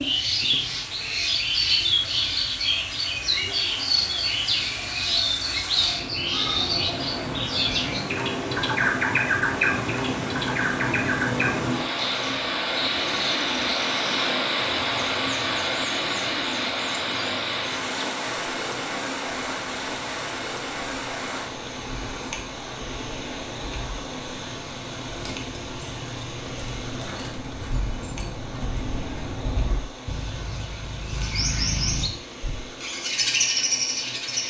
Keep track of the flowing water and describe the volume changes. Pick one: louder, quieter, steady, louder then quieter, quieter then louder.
louder then quieter.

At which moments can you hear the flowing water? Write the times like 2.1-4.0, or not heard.
0.0-34.4.